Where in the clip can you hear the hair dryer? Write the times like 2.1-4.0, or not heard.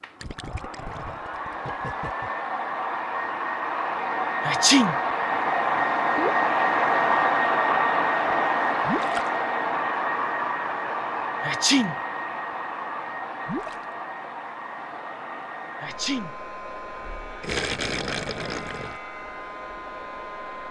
0.0-20.6.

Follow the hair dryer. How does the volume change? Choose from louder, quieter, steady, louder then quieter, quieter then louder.
louder then quieter.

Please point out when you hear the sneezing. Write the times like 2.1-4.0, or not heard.
4.4-5.0, 11.4-11.9, 15.8-16.3.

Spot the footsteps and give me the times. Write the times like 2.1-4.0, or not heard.
not heard.